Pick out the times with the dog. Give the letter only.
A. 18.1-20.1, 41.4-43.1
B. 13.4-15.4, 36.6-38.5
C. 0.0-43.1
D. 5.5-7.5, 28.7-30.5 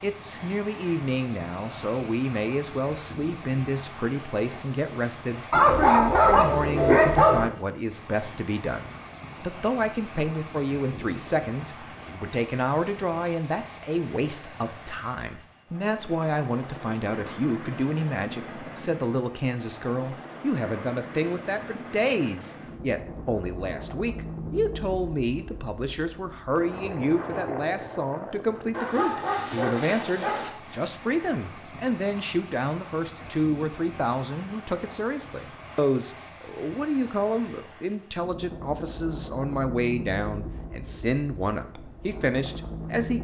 D.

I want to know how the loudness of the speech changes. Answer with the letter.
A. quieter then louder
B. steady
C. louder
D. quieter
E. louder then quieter
B.